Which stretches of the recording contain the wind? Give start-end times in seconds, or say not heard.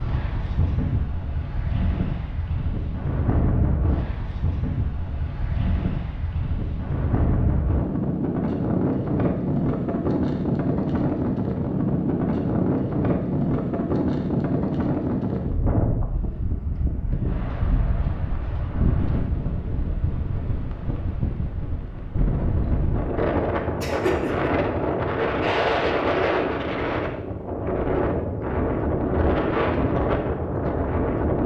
0.0-31.4.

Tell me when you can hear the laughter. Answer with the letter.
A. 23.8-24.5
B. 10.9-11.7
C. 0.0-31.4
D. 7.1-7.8
A.